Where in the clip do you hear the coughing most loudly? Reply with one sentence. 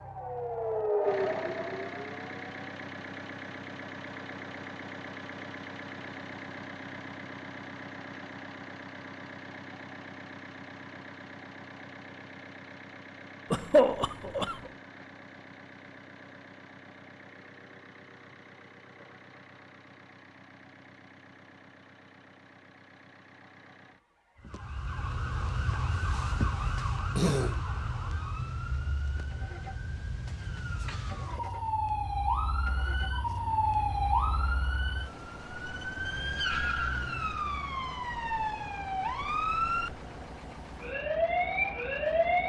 The loudest moment of the coughing is at 14 seconds.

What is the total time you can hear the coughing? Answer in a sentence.
The coughing can be heard for 2 seconds in total.